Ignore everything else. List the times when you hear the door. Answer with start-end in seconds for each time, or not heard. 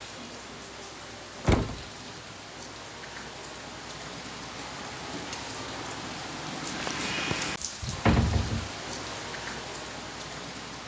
1.4-1.9, 8.1-8.7.